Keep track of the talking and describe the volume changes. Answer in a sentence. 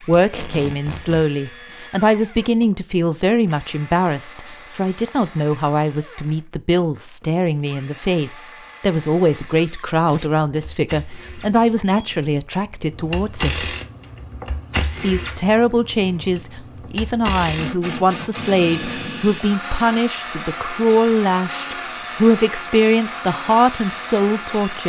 The loudness of the talking stays about the same.